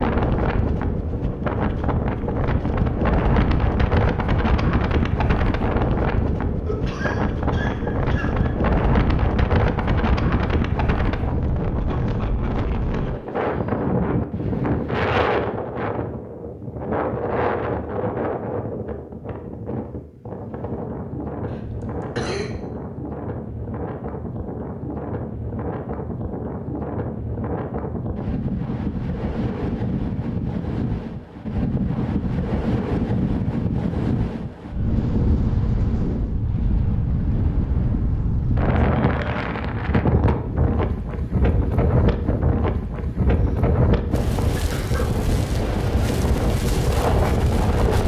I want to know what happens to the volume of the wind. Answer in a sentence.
The volume of the wind goes down, then up.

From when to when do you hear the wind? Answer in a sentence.
The wind can be heard from 0.0 to 48.0 s.